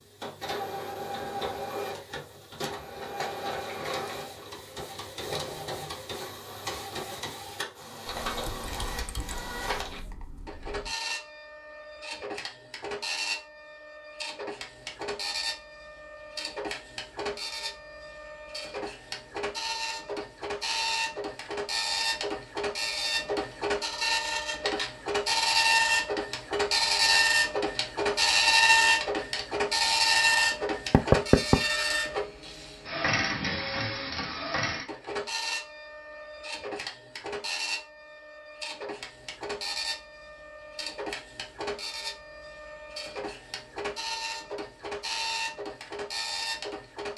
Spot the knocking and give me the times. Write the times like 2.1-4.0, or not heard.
30.9-31.6.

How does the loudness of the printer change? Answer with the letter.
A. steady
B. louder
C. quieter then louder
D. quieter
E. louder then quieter
E.